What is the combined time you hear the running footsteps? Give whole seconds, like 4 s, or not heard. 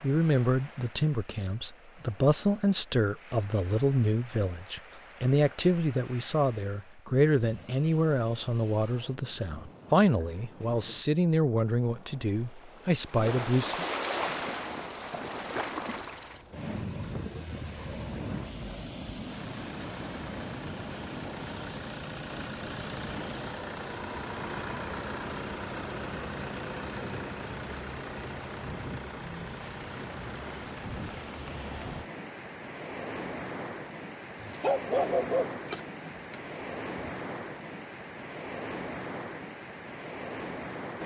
not heard.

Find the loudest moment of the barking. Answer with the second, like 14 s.
35 s.